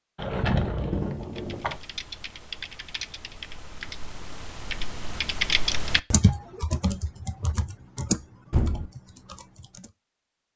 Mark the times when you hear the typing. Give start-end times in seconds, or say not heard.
1.2-9.9.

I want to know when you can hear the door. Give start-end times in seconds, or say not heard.
0.1-1.8, 8.5-8.9.